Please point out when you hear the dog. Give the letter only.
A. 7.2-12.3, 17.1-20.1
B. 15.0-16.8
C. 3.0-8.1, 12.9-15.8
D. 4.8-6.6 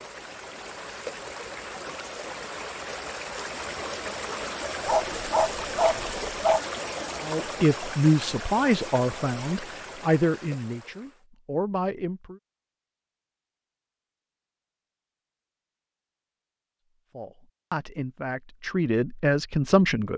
D.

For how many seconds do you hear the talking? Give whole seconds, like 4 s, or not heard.
8 s.